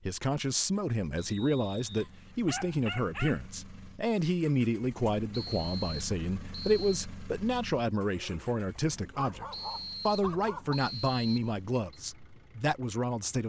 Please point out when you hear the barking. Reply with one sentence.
The barking can be heard from 1.9 to 3.4 s and from 8.2 to 10.8 s.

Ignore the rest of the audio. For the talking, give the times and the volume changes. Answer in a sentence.
The talking can be heard from 0.0 to 13.4 s, at a steady volume.